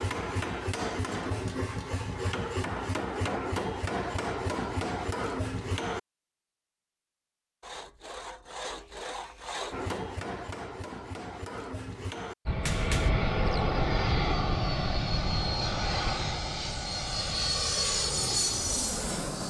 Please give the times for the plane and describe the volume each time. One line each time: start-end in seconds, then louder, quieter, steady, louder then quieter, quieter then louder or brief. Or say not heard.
12.4-19.4 steady.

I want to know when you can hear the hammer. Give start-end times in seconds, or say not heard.
0.0-6.0, 9.7-13.1.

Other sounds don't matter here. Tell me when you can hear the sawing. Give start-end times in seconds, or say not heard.
7.6-9.9.